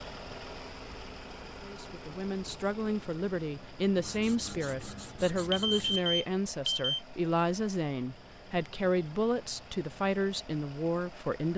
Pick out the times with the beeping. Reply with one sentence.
You can hear the beeping from 5.5 to 7.0 s.